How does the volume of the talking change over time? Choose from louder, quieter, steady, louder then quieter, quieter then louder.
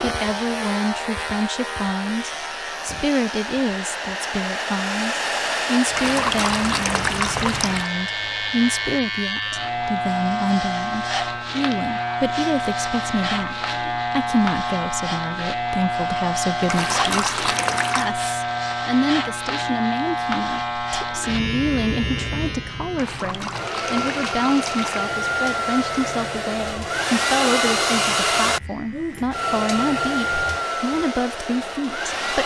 steady.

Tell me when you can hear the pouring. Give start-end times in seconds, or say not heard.
6.0-7.9, 16.6-18.1, 22.9-25.0.